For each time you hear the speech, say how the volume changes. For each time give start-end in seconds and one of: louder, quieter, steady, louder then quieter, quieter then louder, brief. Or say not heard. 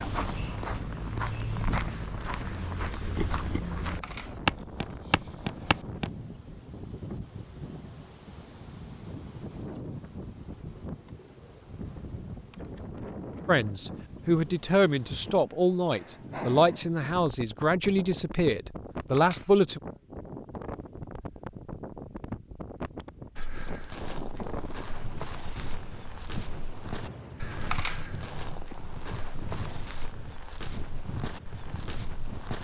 13.4-19.8 steady.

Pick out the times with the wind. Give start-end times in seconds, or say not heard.
0.0-32.5.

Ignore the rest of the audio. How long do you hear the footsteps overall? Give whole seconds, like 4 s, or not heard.
15 s.